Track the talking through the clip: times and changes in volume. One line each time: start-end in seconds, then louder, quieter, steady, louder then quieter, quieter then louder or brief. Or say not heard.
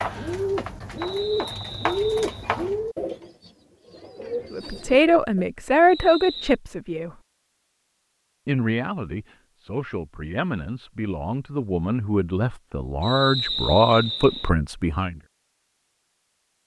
4.5-7.2 brief
8.4-15.2 louder.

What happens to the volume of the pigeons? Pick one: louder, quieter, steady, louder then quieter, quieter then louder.
quieter then louder.